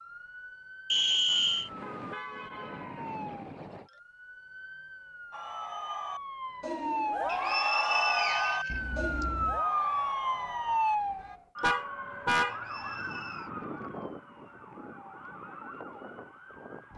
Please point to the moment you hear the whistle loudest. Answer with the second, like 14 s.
1 s.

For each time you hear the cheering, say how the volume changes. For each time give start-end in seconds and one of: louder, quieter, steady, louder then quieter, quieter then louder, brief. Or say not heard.
5.3-11.4 louder then quieter.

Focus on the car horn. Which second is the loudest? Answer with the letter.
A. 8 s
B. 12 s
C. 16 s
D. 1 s
B.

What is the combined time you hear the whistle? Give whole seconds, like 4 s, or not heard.
4 s.